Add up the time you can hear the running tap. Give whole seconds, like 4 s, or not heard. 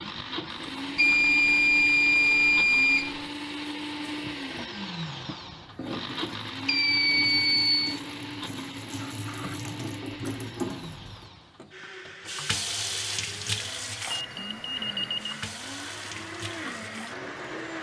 18 s.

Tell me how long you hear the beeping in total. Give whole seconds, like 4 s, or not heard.
5 s.